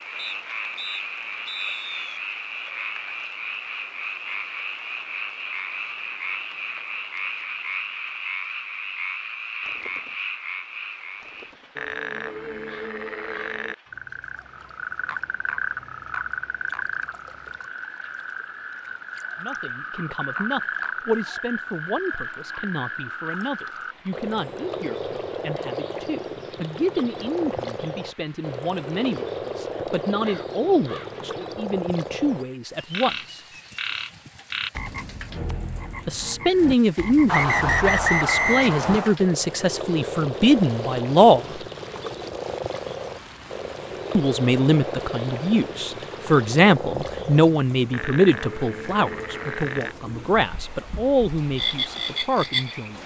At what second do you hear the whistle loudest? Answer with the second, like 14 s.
38 s.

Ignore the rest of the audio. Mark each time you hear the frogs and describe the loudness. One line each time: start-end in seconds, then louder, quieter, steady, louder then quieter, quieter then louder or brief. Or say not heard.
0.0-53.0 steady.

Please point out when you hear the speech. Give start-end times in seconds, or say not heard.
19.4-33.4, 36.0-41.5, 44.1-53.0.